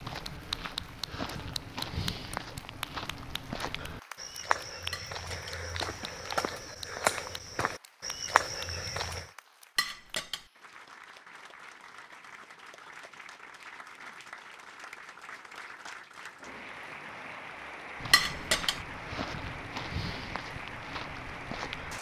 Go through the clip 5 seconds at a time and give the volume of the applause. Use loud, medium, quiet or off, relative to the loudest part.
loud, quiet, medium, loud, loud.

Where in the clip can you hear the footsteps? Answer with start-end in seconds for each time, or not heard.
0.0-9.3, 17.9-21.9.